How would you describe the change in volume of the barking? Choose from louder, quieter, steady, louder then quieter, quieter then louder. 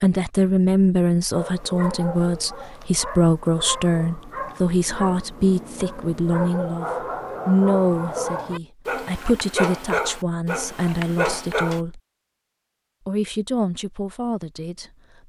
louder.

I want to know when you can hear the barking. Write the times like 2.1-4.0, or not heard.
1.3-11.8.